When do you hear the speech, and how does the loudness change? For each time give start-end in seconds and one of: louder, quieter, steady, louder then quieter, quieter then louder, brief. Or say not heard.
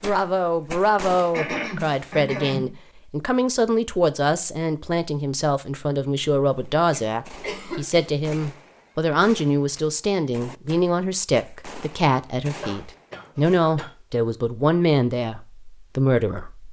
0.0-16.6 steady.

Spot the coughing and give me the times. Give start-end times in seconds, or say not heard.
1.3-2.7, 6.9-8.1, 12.6-13.9.